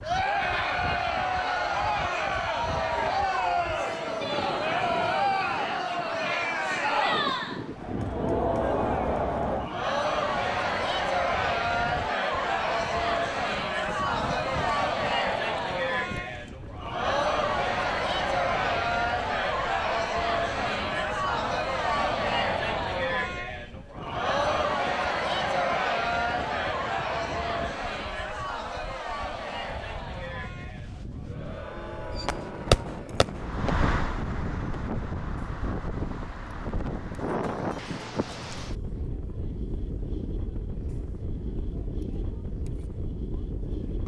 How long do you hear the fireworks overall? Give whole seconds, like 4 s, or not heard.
2 s.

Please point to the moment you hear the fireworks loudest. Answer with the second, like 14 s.
33 s.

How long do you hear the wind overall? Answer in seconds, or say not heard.
44 s.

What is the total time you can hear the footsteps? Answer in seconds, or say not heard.
not heard.